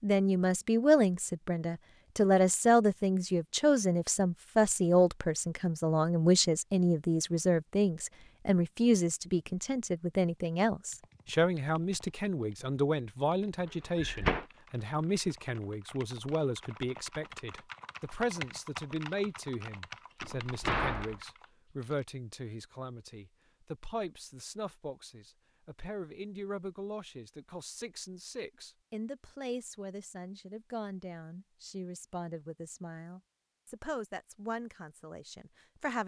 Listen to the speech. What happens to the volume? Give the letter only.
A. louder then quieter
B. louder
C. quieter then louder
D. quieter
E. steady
D.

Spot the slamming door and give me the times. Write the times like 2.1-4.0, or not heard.
13.9-14.4, 20.2-21.2.